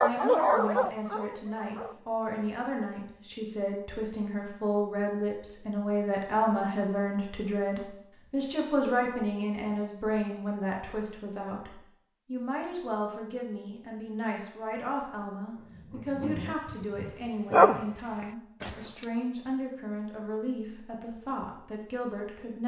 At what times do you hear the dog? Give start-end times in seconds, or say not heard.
0.0-2.0, 15.6-19.1.